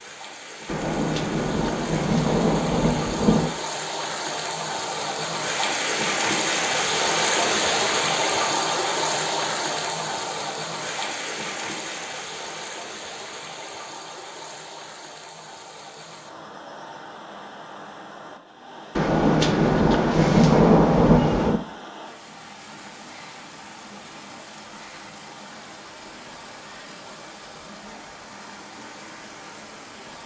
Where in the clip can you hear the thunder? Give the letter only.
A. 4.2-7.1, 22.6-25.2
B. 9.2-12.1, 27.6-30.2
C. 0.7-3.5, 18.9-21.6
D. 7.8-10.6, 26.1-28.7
C.